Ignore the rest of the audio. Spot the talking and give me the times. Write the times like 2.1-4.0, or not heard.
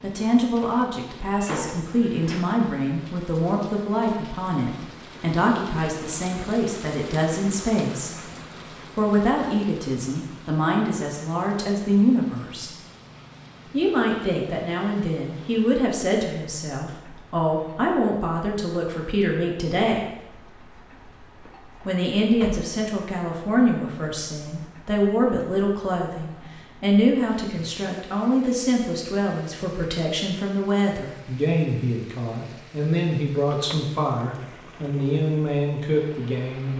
0.0-8.3, 8.9-12.8, 13.7-20.0, 21.9-36.7.